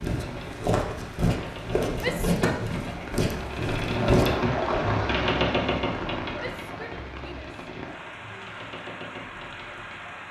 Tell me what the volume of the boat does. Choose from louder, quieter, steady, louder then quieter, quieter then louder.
louder then quieter.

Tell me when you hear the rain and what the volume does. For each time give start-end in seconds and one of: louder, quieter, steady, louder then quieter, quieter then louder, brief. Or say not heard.
0.0-10.2 louder then quieter.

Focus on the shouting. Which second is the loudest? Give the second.
2 s.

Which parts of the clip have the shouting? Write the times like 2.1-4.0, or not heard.
1.9-3.0, 6.3-8.6.